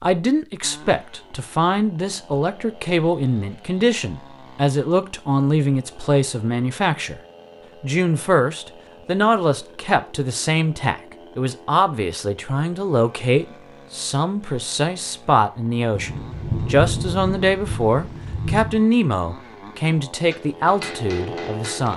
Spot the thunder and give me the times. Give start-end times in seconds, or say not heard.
15.9-18.9.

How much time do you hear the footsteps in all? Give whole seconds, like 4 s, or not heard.
not heard.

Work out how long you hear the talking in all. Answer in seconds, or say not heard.
21 s.